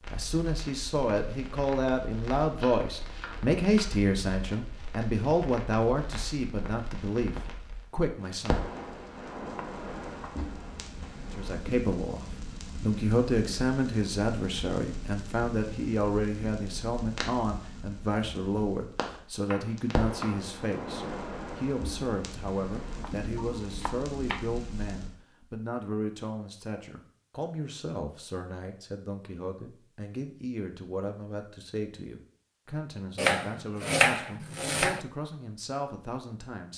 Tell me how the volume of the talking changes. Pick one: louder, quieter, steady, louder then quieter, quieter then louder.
quieter.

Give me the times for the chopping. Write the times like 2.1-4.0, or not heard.
2.5-3.9, 9.6-11.1, 19.4-20.5, 23.0-24.4, 33.1-35.0.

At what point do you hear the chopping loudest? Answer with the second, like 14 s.
34 s.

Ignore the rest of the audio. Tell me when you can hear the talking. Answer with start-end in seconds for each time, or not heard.
0.1-8.7, 11.2-36.7.